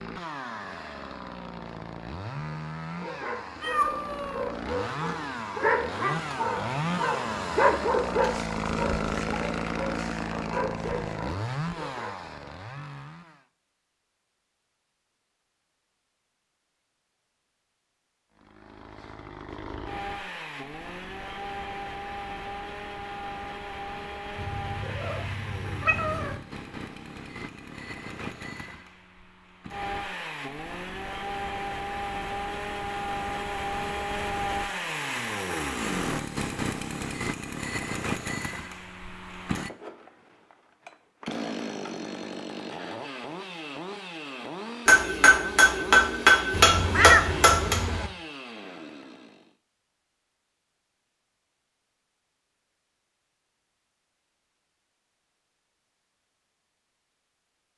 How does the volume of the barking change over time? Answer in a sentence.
The volume of the barking goes up, then down.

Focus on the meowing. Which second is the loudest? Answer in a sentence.
The volume of the meowing peaks at 47 seconds.